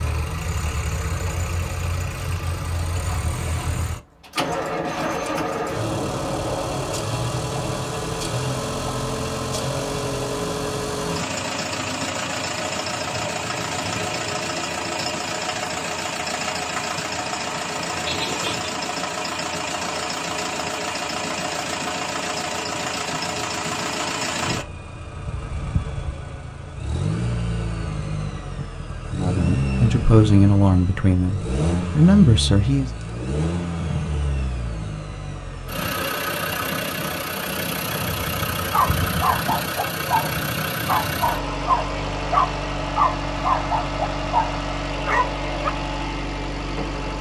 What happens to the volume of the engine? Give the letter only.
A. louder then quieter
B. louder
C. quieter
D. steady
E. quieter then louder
D.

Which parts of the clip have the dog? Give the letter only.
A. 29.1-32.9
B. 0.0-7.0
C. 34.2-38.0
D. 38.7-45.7
D.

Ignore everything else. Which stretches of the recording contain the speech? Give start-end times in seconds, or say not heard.
29.1-32.9.